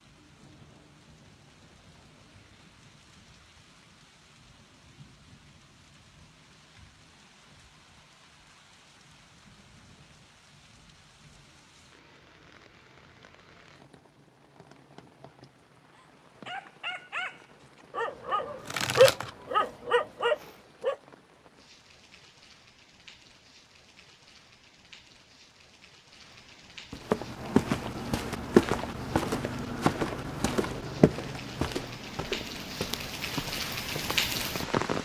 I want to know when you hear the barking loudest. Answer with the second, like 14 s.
19 s.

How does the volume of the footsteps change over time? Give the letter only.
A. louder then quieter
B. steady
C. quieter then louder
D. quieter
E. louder
D.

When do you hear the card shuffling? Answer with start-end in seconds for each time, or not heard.
18.6-19.3.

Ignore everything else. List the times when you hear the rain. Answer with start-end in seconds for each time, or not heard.
0.0-34.9.